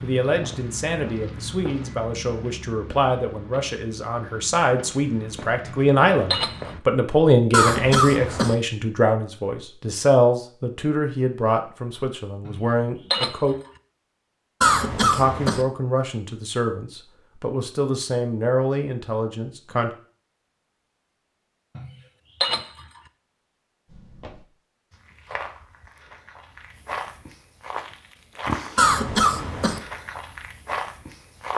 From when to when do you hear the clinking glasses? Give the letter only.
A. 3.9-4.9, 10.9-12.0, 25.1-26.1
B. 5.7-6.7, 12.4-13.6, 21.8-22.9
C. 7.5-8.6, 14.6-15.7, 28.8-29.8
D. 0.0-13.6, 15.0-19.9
B.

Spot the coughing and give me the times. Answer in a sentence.
The coughing can be heard from 7.5 to 8.6 s, from 14.6 to 15.7 s and from 28.8 to 29.8 s.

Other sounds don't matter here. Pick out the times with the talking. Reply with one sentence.
You can hear the talking from 0.0 to 13.6 s and from 15.0 to 19.9 s.